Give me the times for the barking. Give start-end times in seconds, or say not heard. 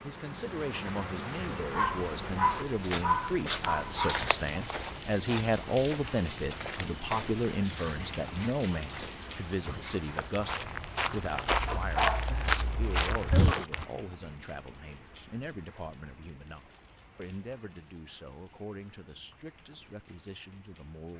1.7-4.3, 11.7-13.7.